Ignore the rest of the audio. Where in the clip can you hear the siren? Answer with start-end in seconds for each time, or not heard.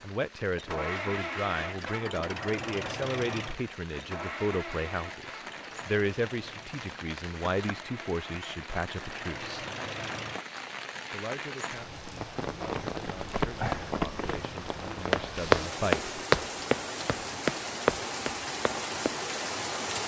not heard.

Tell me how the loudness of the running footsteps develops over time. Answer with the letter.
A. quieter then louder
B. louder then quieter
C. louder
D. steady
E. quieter
B.